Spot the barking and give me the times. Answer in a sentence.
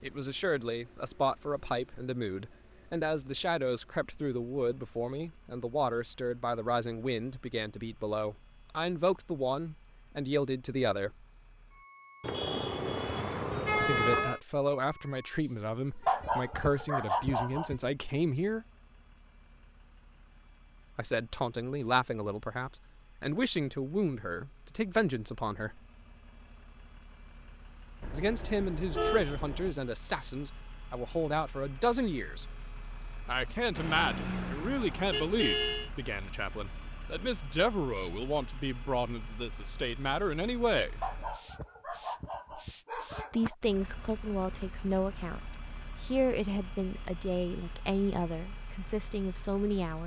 The barking can be heard from 16.1 to 17.8 s and from 41.0 to 43.5 s.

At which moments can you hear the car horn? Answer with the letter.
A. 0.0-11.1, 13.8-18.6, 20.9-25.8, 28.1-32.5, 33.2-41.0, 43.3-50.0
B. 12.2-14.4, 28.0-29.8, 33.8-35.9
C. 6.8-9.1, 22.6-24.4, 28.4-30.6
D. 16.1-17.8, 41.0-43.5
B.